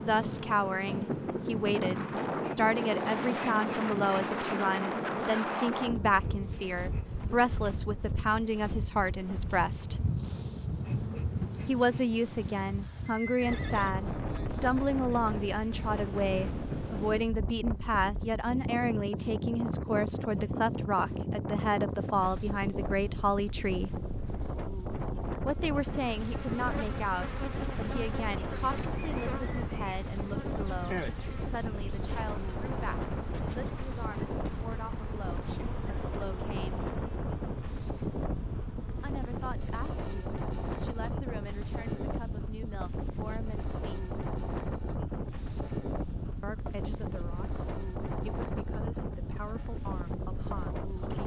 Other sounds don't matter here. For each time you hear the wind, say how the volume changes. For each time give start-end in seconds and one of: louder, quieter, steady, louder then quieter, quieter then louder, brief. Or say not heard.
0.0-51.2 steady.